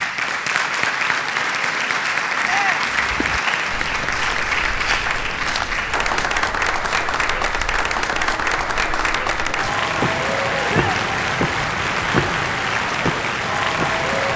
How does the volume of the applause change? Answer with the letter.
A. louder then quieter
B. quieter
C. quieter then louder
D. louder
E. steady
E.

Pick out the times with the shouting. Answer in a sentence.
You can hear the shouting from 2.4 to 3.0 s and from 10.7 to 11.1 s.